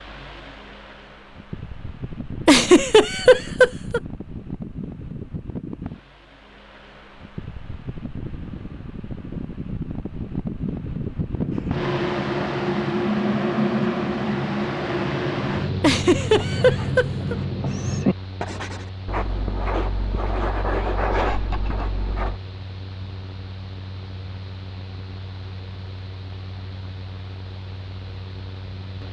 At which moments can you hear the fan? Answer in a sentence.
The fan can be heard from 0.0 to 29.0 s.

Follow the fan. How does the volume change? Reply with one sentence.
The volume of the fan goes up, then down.